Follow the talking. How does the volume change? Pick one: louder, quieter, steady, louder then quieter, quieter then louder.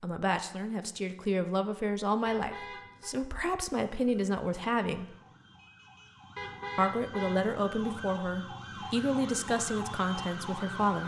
steady.